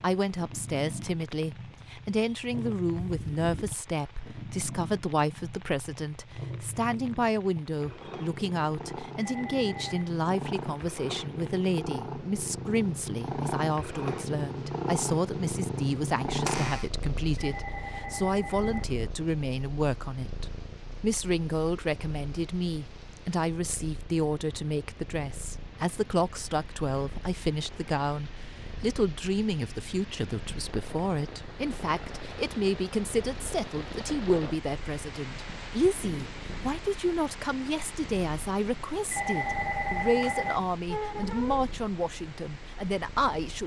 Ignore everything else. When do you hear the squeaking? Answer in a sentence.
The squeaking can be heard from 3.0 to 3.9 s, from 16.2 to 16.9 s and from 40.9 to 41.6 s.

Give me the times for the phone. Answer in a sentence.
You can hear the phone from 9.2 to 10.1 s, from 17.4 to 18.9 s and from 39.1 to 40.6 s.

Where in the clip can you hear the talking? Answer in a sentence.
The talking can be heard from 0.0 to 43.6 s.